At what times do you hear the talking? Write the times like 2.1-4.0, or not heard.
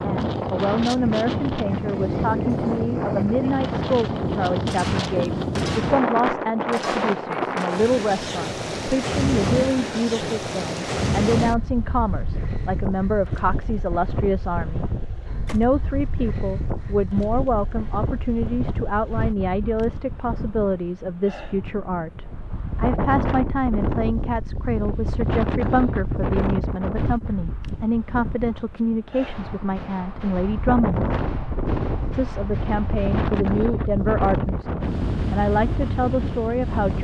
0.0-14.8, 15.5-31.1, 32.1-36.9.